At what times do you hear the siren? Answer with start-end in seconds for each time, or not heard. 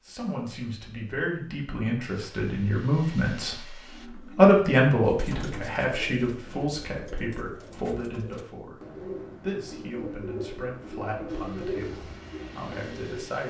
not heard.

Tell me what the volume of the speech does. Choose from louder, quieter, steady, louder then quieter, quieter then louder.
louder then quieter.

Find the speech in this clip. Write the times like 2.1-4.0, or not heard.
0.1-13.4.